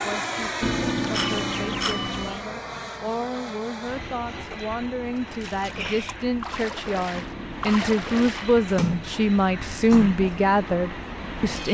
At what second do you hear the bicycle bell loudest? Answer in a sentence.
The volume of the bicycle bell peaks at 1 second.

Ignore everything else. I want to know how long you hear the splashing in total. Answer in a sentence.
You can hear the splashing for 6 seconds altogether.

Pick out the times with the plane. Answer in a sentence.
The plane can be heard from 0.0 to 11.6 s.